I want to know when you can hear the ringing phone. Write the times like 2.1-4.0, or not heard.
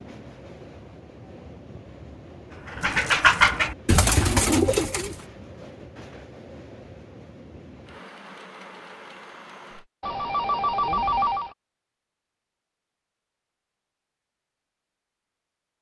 2.8-3.3, 10.0-11.6.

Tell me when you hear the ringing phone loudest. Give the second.
11 s.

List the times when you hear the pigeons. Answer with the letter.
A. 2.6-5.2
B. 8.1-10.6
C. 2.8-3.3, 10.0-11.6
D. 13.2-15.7
A.